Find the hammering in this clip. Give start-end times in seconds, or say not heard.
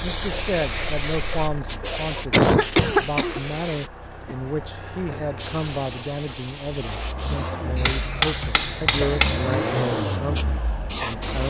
7.8-9.6.